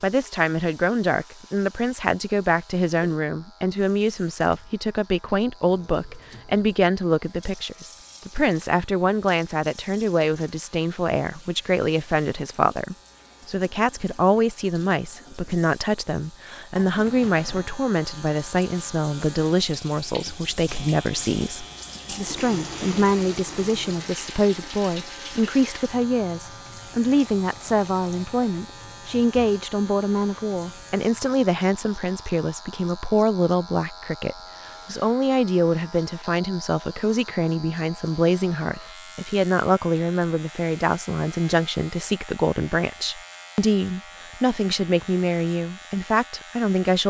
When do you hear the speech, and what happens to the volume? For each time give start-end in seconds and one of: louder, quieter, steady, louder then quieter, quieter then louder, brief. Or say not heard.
0.0-47.0 steady.